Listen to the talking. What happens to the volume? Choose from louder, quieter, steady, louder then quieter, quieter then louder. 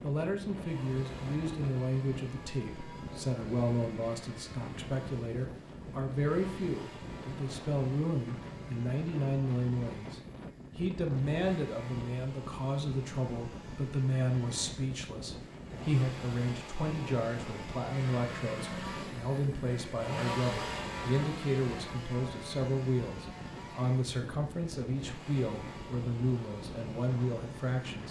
steady.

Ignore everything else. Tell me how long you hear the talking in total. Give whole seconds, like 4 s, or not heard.
28 s.